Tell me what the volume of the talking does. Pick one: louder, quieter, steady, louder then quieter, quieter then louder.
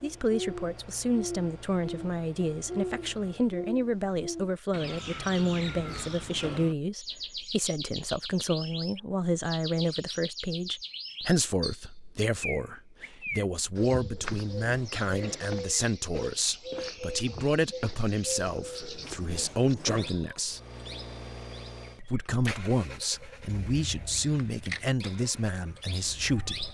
steady.